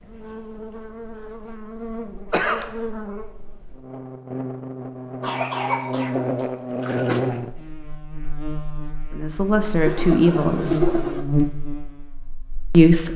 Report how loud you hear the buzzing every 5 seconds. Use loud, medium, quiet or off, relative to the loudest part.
medium, loud, loud.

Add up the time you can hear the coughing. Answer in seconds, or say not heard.
4 s.